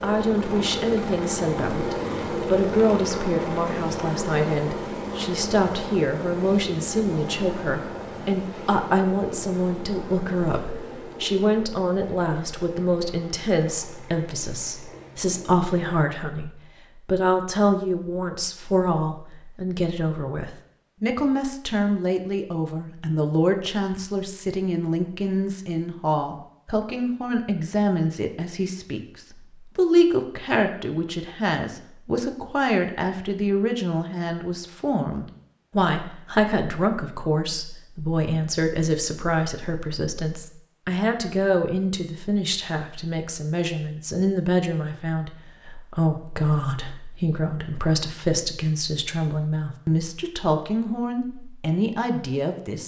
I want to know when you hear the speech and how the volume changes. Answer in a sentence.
You can hear the speech from 0.0 to 52.8 s, at a steady volume.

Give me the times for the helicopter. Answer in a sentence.
The helicopter can be heard from 0.0 to 16.1 s.